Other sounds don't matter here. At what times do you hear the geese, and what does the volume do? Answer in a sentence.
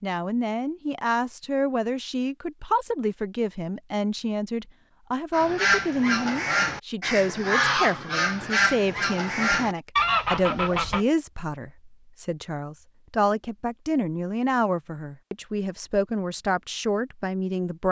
You can hear the geese from 5.3 to 11.1 s, at a steady volume.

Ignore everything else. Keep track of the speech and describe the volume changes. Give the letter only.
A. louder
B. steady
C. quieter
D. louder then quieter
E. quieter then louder
B.